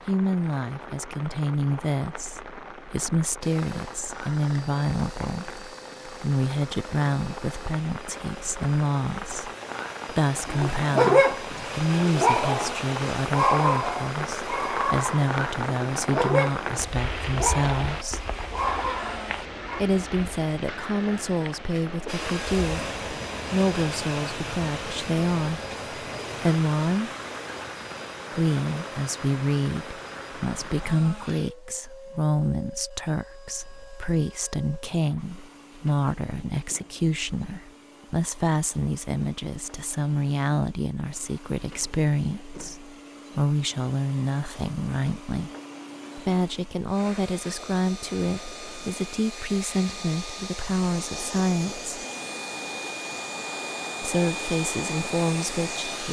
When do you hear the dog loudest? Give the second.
11 s.